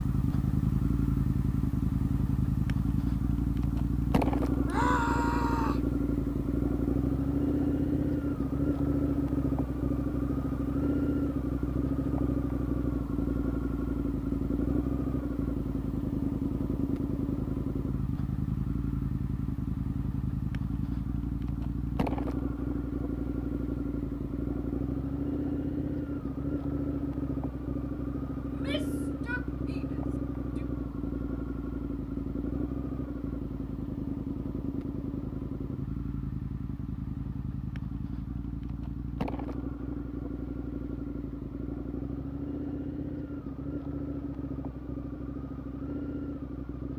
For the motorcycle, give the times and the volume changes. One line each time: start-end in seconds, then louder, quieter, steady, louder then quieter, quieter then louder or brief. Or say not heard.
0.0-46.9 quieter.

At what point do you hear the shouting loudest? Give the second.
5 s.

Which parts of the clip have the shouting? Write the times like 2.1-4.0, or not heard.
4.7-5.8, 28.4-30.6.